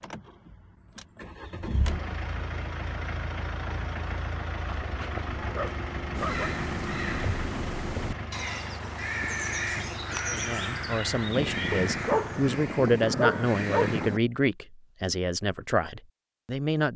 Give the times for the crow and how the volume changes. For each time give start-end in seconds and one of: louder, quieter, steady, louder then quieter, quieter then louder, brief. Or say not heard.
6.2-14.2 steady.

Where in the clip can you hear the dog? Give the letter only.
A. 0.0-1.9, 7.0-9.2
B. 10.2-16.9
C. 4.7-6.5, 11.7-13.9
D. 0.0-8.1
C.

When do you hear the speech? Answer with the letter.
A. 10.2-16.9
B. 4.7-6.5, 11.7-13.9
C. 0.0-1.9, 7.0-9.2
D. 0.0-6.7
A.